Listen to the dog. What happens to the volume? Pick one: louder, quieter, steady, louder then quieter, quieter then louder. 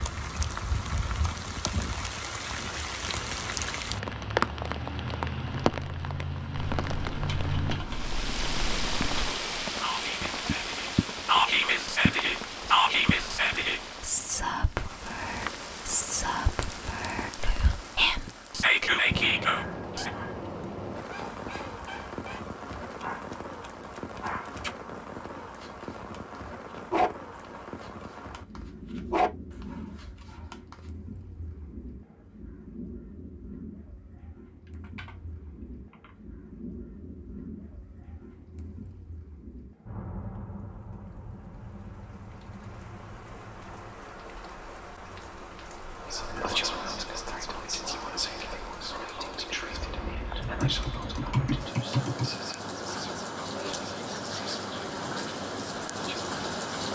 louder.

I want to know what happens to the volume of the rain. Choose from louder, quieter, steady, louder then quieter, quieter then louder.
quieter then louder.